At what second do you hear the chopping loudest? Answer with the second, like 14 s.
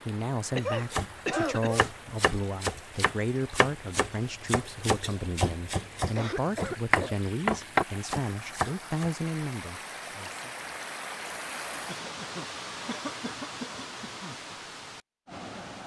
8 s.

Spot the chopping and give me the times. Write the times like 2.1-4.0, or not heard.
0.9-9.1.